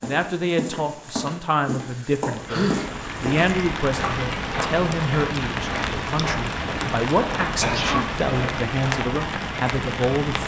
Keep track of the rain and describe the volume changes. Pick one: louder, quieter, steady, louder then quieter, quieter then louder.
steady.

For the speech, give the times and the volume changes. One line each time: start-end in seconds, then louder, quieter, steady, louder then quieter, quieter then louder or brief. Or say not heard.
0.0-10.4 steady.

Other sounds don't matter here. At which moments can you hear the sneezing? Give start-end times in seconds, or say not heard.
1.8-3.0, 7.6-8.2.